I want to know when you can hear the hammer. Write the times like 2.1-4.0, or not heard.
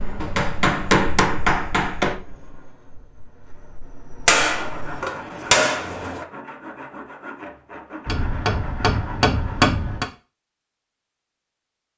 0.2-2.1, 4.2-6.2, 8.1-10.1.